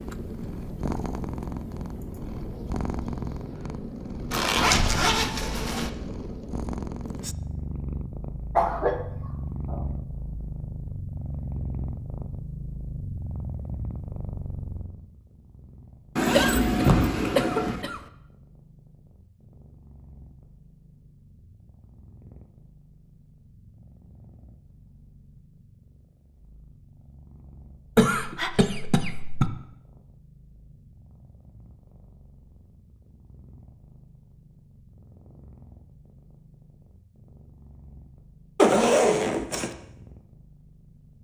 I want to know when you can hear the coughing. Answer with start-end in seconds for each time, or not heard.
8.6-9.8, 16.3-18.0, 27.9-29.5.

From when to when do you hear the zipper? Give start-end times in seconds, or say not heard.
4.3-5.9, 16.1-17.8, 38.5-39.7.